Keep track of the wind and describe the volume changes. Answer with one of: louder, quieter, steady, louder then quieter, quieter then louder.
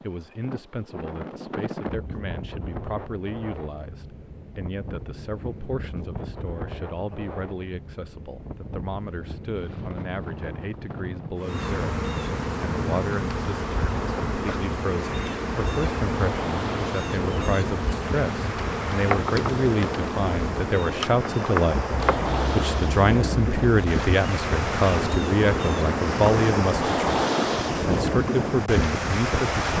louder.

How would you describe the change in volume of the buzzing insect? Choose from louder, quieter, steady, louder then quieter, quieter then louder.
steady.